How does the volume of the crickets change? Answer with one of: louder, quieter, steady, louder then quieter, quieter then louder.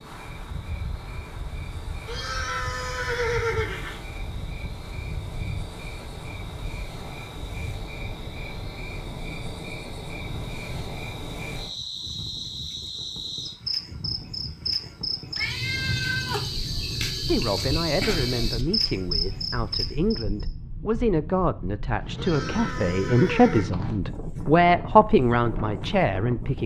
louder.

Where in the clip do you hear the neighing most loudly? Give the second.
3 s.